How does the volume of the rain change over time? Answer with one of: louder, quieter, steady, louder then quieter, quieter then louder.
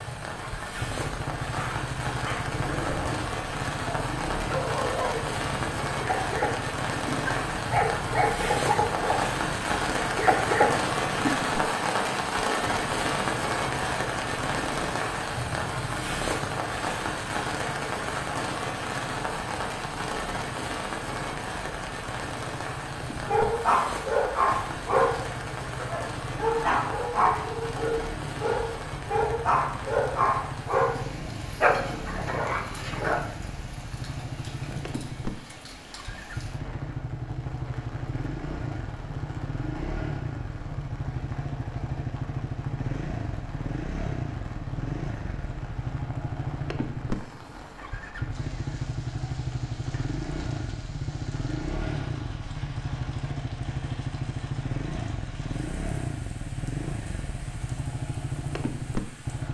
quieter.